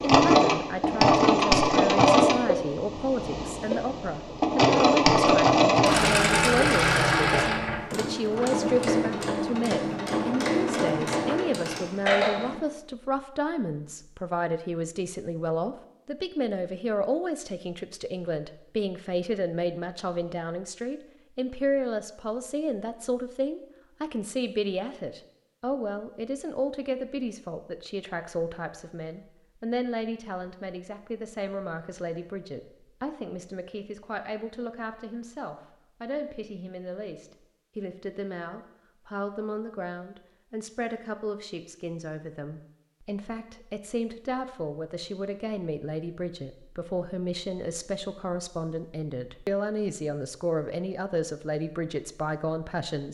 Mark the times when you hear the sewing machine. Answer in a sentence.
You can hear the sewing machine from 0.0 to 12.6 s.